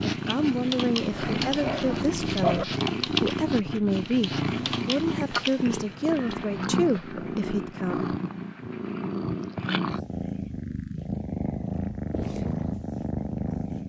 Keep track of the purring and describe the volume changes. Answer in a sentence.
The volume of the purring stays about the same.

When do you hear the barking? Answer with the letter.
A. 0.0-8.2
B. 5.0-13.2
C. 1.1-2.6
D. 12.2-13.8
C.